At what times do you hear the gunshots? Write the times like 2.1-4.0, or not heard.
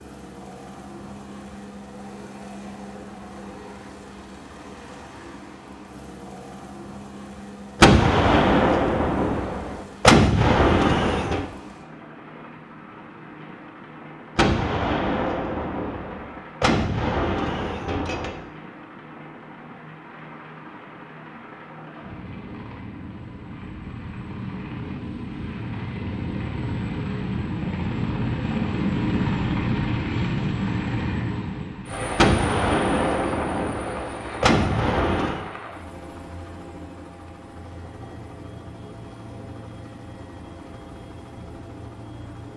7.8-11.4, 14.3-18.4, 32.1-35.5.